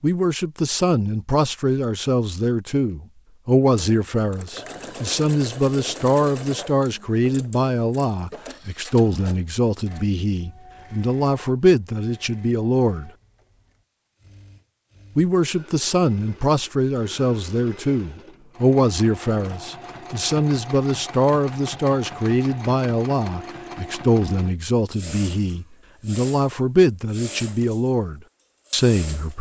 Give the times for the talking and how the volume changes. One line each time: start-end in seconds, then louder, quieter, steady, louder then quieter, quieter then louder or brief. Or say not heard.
0.0-13.1 steady
15.2-29.3 steady.